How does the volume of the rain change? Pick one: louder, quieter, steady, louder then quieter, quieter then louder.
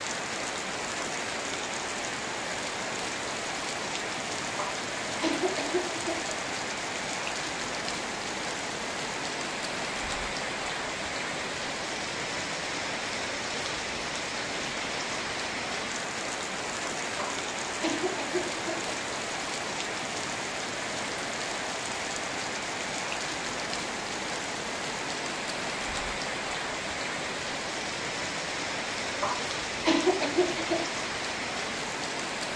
steady.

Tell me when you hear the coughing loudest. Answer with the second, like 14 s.
30 s.